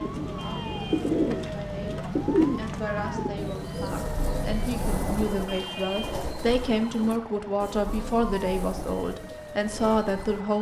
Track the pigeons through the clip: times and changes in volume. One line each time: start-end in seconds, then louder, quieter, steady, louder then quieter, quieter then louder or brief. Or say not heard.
0.0-10.4 quieter.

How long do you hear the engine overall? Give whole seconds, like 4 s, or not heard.
5 s.